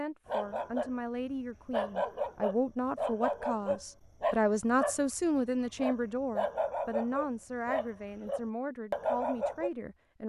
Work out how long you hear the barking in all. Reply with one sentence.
You can hear the barking for 9 seconds altogether.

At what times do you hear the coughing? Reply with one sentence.
The coughing can't be heard in this clip.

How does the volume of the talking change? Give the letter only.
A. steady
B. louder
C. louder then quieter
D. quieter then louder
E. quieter
C.